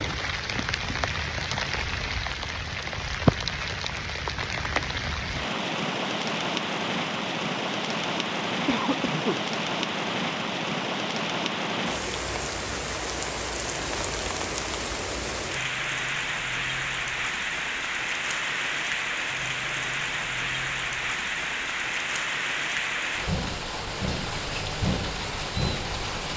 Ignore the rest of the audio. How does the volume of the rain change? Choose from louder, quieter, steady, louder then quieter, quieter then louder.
steady.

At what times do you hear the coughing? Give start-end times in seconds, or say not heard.
8.7-9.4.